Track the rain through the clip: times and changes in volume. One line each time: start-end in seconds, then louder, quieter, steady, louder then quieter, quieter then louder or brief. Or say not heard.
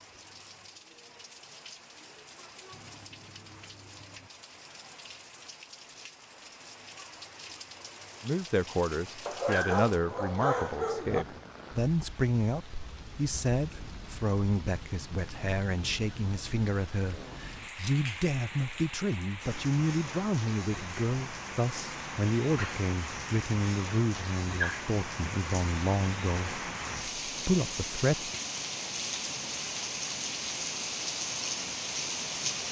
0.0-32.6 louder.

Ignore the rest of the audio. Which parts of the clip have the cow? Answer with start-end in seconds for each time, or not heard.
2.7-4.3.